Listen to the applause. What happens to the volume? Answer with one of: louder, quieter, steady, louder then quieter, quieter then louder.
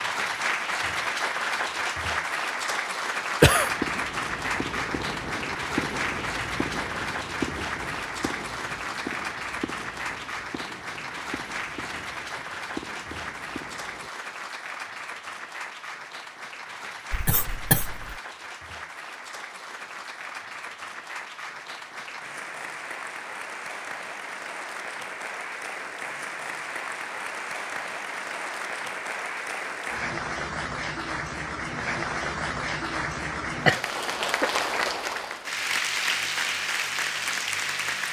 quieter then louder.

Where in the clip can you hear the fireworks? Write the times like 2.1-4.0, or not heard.
3.5-14.1.